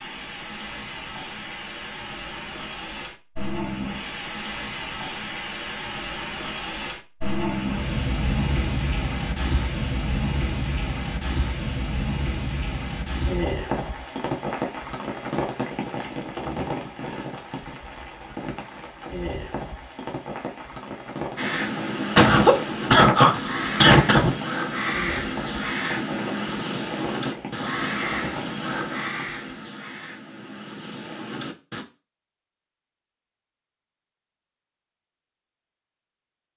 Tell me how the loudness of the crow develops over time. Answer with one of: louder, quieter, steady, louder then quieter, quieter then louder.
quieter.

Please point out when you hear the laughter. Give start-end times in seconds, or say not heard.
22.1-24.4.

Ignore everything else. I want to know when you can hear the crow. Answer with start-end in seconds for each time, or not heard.
21.4-31.9.